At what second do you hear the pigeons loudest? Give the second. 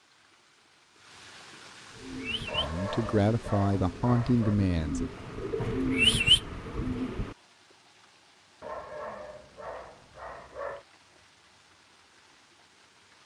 6 s.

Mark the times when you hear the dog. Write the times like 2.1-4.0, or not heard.
2.5-4.5, 8.6-10.8.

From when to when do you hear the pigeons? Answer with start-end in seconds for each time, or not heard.
1.9-7.3.